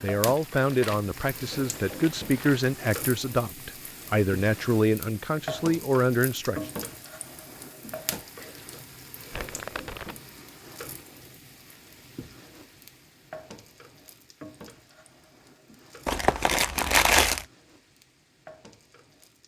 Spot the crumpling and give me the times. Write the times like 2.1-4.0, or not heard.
0.3-2.7, 9.3-10.2, 16.1-17.4.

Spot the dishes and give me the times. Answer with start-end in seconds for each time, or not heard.
not heard.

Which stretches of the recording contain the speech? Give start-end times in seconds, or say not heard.
0.0-6.6.